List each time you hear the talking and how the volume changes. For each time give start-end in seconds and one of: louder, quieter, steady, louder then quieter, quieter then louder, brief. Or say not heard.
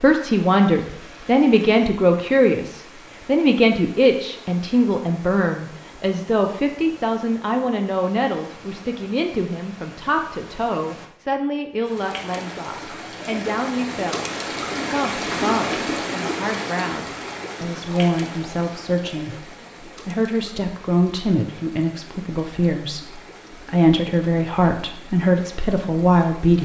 0.0-14.3 quieter
14.9-26.6 louder.